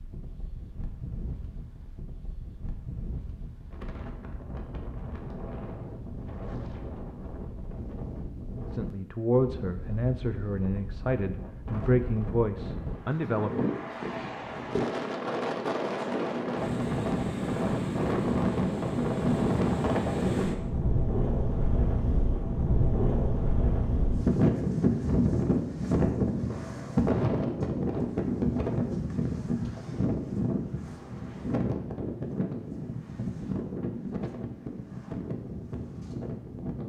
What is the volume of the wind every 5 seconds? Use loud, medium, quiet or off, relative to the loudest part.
quiet, quiet, medium, loud, loud, loud, medium, medium.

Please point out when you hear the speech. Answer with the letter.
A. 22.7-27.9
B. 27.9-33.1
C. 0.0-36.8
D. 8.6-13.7
D.